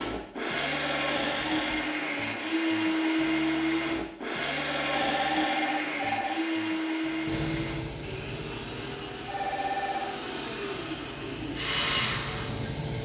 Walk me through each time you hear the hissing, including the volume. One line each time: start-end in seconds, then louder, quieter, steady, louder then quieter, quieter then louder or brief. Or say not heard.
7.2-13.0 quieter then louder.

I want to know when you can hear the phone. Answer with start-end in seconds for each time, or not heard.
1.5-1.9, 5.1-6.5, 9.2-10.2.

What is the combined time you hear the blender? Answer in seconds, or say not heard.
13 s.